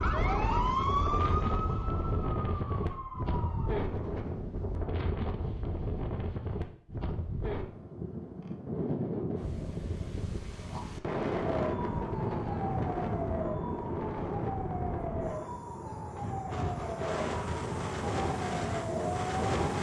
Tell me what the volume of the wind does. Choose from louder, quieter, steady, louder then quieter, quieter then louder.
steady.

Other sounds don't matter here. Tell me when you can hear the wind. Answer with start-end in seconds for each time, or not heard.
0.0-19.7.